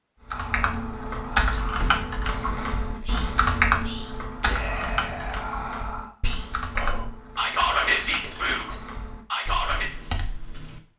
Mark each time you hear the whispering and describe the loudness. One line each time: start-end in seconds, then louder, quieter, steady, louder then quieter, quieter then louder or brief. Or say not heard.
0.3-9.8 louder.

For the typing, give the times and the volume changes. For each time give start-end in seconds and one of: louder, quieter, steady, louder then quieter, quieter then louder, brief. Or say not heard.
0.3-10.8 quieter.